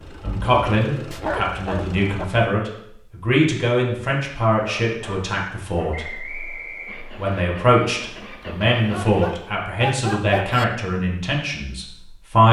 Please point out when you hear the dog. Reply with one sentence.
You can hear the dog from 0.2 to 2.2 s, from 4.6 to 6.1 s and from 8.8 to 10.7 s.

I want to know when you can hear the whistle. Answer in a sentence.
You can hear the whistle from 5.9 to 7.5 s.